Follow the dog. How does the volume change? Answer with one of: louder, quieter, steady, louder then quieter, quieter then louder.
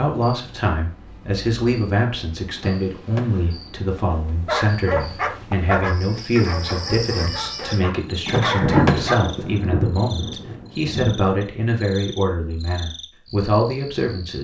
quieter then louder.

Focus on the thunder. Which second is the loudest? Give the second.
9 s.